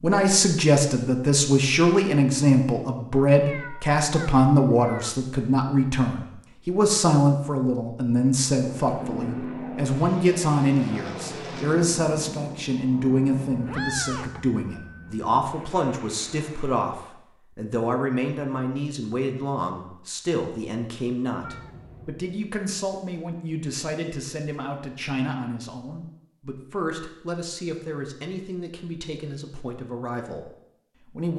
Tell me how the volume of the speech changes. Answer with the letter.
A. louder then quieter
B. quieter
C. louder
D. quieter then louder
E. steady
B.